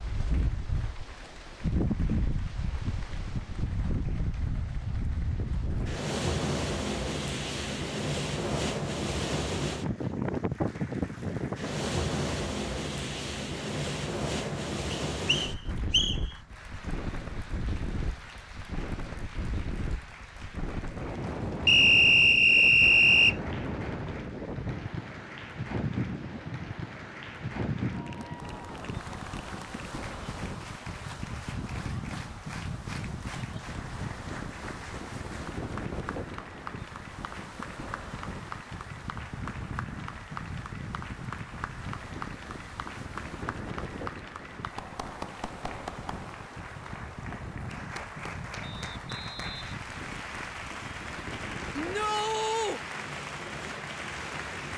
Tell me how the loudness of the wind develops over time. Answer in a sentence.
The volume of the wind goes down.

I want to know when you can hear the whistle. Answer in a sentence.
The whistle can be heard from 14.9 to 16.2 s, from 21.6 to 23.4 s and from 48.6 to 49.7 s.